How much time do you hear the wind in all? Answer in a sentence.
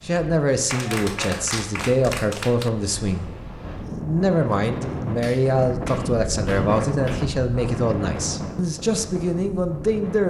The wind can be heard for 10 seconds in total.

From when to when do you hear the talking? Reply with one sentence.
The talking can be heard from 0.0 to 10.2 s.